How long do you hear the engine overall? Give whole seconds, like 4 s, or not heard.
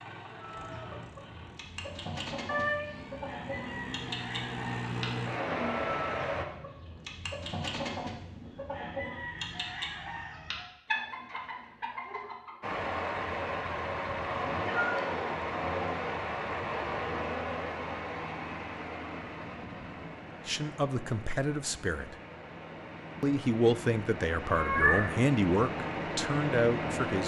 21 s.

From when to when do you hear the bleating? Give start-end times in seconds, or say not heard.
not heard.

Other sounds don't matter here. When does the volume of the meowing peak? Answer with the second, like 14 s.
25 s.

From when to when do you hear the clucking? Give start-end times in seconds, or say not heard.
0.2-12.7.